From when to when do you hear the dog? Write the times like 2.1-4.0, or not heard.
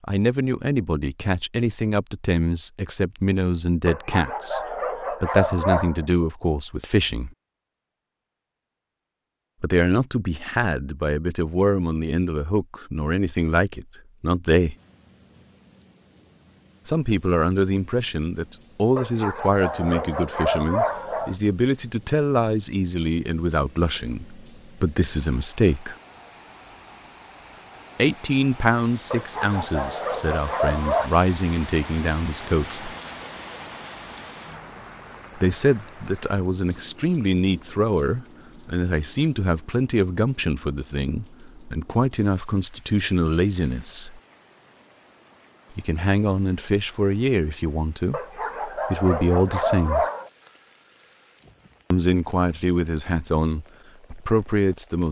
3.9-6.0, 18.9-21.4, 29.1-31.1, 48.1-50.3.